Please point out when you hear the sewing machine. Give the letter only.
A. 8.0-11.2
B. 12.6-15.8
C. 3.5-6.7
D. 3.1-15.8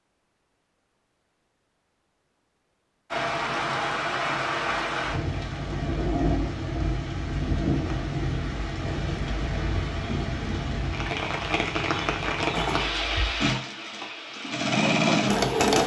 B.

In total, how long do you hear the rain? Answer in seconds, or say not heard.
13 s.